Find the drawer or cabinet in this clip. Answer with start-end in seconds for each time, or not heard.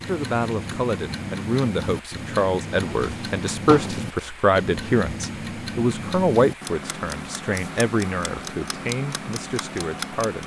2.7-4.2.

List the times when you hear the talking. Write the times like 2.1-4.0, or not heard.
0.1-10.4.